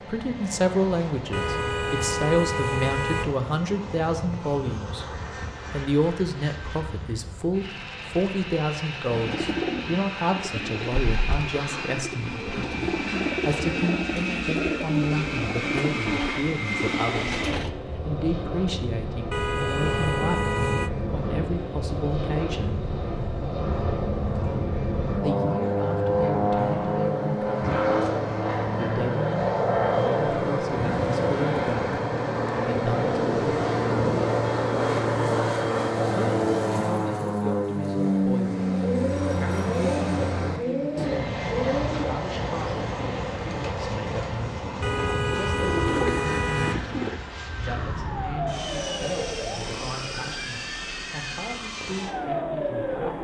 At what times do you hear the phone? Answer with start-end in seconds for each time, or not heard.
not heard.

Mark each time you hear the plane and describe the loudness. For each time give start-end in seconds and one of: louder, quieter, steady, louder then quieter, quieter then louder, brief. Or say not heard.
0.0-53.2 louder then quieter.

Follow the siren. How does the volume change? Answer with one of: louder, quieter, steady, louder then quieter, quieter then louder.
quieter then louder.